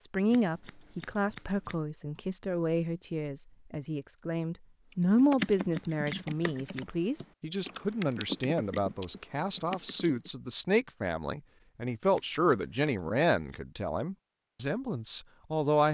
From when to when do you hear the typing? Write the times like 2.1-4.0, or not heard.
4.9-10.3.